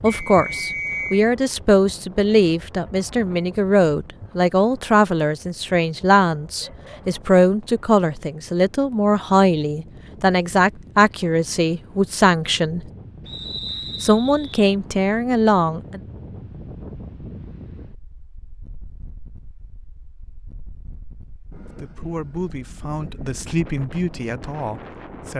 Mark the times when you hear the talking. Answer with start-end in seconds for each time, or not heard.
0.0-12.8, 14.0-16.0, 21.8-25.3.